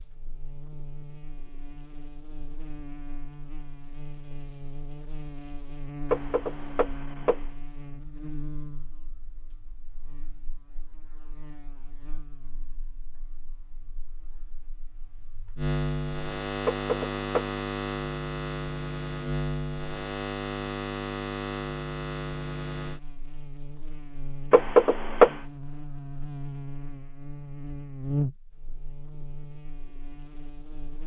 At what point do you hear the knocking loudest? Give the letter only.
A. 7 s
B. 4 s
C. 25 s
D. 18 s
C.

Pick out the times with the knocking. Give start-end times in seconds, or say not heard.
6.1-7.4, 16.6-17.6, 24.5-25.4.